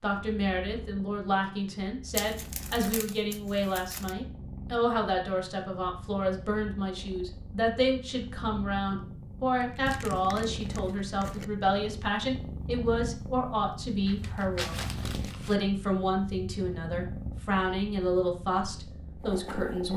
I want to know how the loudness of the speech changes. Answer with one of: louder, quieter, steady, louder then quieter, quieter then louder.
steady.